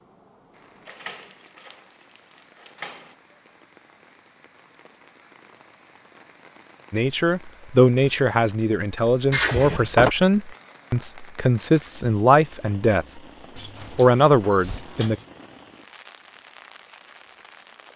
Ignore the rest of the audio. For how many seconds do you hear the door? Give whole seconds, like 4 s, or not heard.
5 s.